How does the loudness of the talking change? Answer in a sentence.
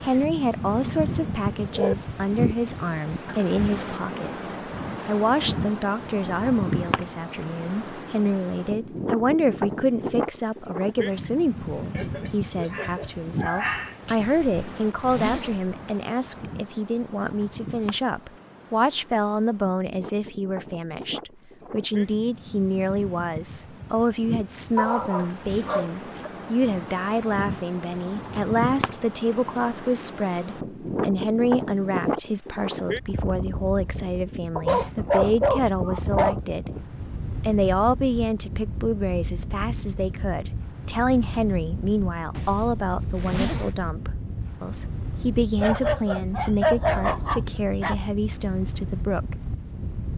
The volume of the talking stays about the same.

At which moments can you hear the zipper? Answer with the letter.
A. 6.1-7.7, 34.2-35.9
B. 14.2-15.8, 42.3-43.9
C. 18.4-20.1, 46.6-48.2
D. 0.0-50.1
B.